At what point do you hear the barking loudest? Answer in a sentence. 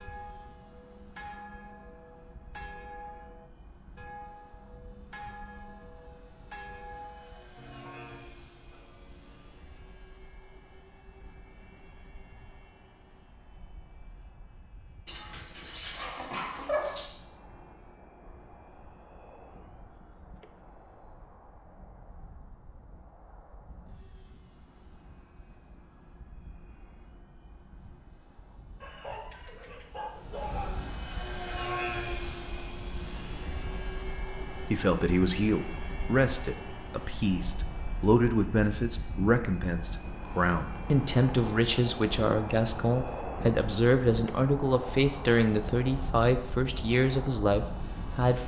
The loudest moment of the barking is at 17 seconds.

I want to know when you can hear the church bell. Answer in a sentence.
The church bell can be heard from 0.0 to 9.8 s.